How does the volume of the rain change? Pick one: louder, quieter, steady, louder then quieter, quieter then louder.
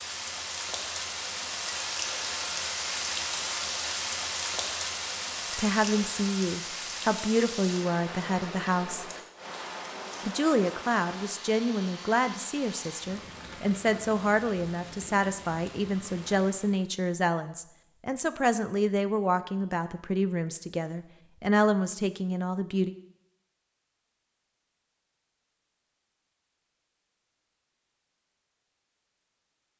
quieter.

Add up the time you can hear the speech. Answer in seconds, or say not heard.
16 s.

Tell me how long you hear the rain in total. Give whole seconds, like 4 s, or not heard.
17 s.